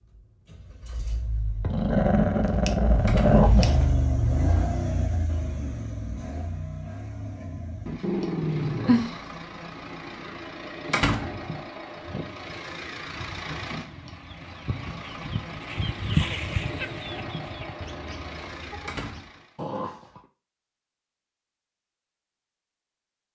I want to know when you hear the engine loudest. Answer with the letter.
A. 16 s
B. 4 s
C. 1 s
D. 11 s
B.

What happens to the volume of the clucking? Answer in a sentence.
The loudness of the clucking goes up, then down.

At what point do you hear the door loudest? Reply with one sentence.
The loudest moment of the door is at 11 seconds.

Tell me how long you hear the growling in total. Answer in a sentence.
You can hear the growling for 4 seconds altogether.